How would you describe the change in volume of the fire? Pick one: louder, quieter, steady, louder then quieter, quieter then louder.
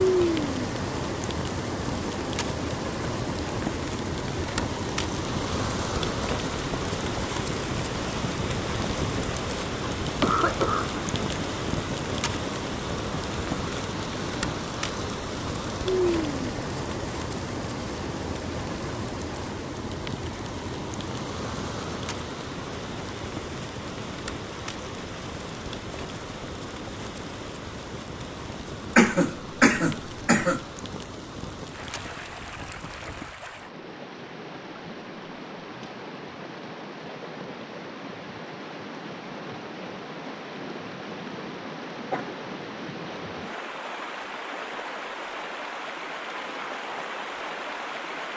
quieter.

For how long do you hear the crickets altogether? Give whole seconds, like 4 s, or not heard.
not heard.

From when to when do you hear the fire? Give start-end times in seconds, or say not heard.
0.1-33.5.